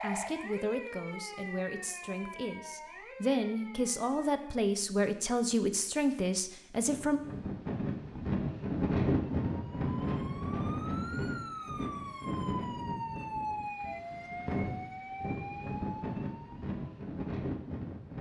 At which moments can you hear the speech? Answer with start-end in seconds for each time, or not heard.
0.0-7.2.